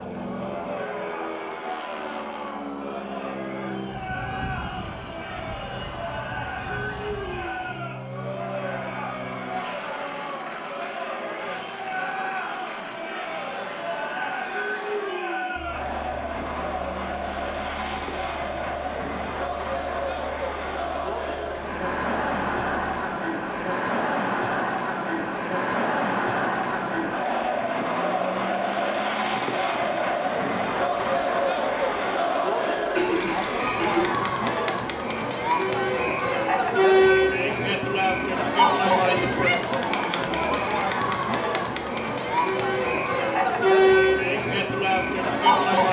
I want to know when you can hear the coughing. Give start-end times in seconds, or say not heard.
32.7-34.1.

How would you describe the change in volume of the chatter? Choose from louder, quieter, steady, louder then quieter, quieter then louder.
louder.